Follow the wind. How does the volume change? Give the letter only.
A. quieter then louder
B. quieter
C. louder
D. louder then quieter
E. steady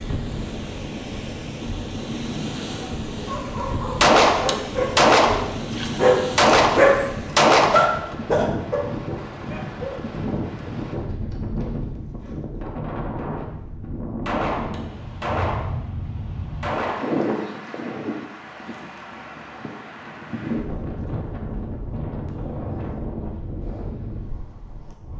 E.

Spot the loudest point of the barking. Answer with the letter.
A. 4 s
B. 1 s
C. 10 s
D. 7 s
D.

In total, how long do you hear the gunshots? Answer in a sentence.
The gunshots can be heard for 5 seconds in total.